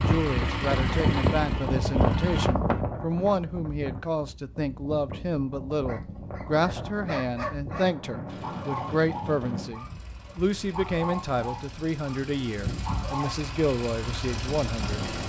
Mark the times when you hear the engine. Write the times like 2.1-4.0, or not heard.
0.0-2.5, 8.2-15.2.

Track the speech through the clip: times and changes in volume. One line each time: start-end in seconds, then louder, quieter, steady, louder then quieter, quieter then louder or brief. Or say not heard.
0.0-15.0 steady.